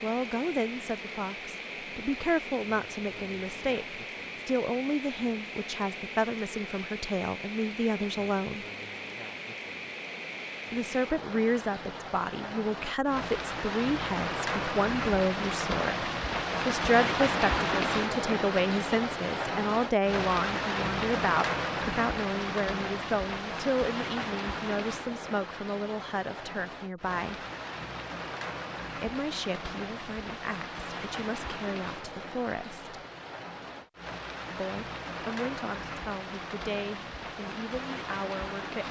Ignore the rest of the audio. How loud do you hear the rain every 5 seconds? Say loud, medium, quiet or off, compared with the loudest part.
medium, medium, medium, loud, loud, medium, medium, medium.